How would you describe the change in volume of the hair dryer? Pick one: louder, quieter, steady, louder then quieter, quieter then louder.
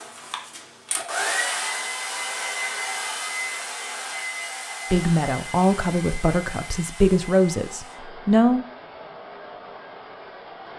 quieter.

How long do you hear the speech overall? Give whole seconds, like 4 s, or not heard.
4 s.